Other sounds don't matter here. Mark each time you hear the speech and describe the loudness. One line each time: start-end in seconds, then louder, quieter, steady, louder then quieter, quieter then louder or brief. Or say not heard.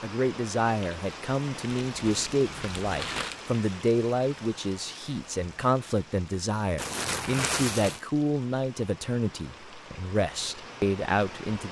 0.0-11.6 steady.